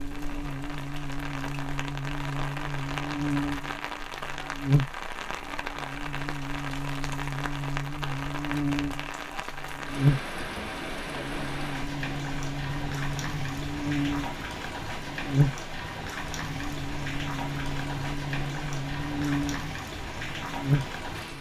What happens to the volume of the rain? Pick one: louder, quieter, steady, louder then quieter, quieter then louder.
steady.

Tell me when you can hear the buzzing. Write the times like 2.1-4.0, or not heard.
0.0-21.3.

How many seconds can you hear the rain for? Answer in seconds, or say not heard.
21 s.